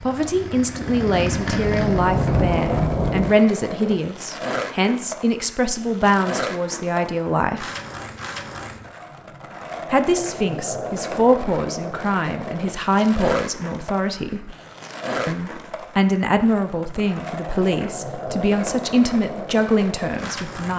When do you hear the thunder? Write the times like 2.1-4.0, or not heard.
1.3-3.4.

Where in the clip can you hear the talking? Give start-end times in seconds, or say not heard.
0.0-7.8, 9.9-14.6, 15.2-20.7.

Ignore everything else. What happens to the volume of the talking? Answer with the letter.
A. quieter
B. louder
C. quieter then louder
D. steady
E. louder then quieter
D.